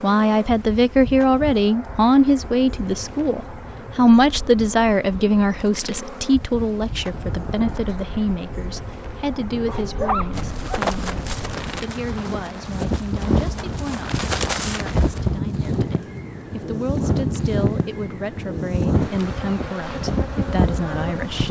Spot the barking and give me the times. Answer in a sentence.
The barking can be heard from 9.5 to 10.8 s.